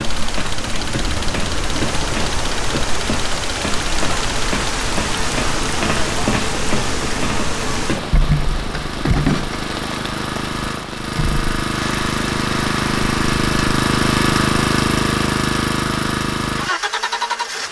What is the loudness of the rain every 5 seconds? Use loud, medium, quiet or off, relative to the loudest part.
loud, loud, medium, off.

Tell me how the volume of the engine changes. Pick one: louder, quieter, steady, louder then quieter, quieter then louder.
louder.